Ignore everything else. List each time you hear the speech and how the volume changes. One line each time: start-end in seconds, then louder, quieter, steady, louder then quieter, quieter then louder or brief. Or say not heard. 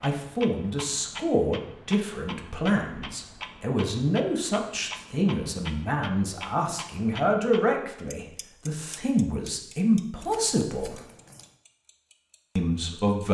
0.0-11.1 steady
12.6-13.2 brief.